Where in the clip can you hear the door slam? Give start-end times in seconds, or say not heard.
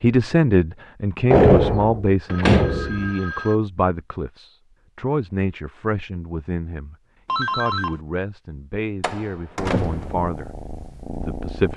1.3-3.1, 9.0-10.2.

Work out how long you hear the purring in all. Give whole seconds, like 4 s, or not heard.
2 s.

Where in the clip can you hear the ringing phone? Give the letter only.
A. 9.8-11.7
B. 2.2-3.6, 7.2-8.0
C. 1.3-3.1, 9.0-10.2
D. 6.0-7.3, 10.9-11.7
B.